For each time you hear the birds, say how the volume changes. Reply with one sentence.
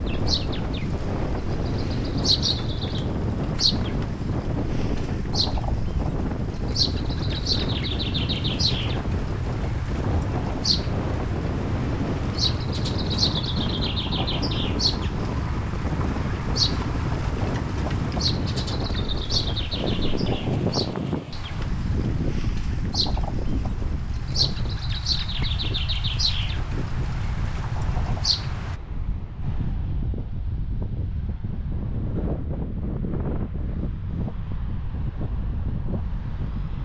You can hear the birds from 0.0 to 28.8 s, at a steady volume.